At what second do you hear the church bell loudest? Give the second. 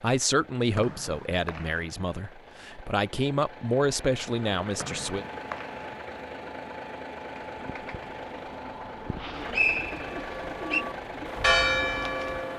12 s.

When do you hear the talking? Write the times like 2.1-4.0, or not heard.
0.0-5.2.